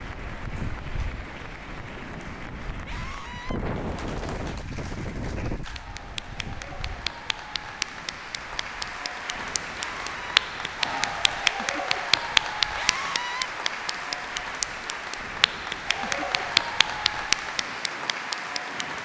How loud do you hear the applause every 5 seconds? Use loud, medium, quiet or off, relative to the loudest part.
quiet, medium, loud, loud.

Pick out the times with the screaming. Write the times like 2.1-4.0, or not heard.
2.9-3.6, 9.8-10.4, 12.8-13.5.